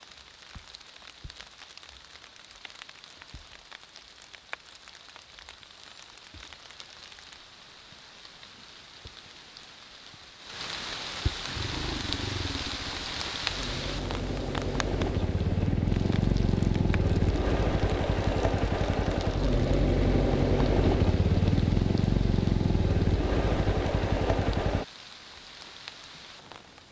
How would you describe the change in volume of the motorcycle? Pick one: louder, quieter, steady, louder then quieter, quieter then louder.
louder.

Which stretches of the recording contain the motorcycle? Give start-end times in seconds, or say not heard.
11.4-24.9.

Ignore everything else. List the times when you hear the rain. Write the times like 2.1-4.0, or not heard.
0.0-26.8.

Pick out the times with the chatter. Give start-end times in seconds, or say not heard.
not heard.